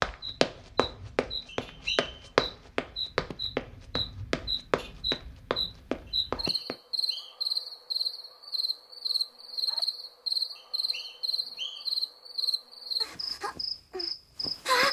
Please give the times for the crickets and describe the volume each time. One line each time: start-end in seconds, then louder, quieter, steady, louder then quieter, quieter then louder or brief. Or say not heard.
0.0-14.8 louder.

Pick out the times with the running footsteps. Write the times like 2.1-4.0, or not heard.
0.0-6.8.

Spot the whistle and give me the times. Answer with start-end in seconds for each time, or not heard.
1.6-2.2, 6.0-7.5, 10.6-12.0.